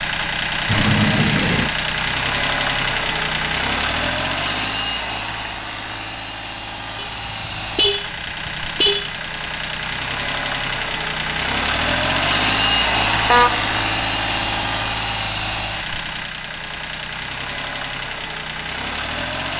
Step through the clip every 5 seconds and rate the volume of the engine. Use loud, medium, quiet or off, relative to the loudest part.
loud, medium, loud, medium.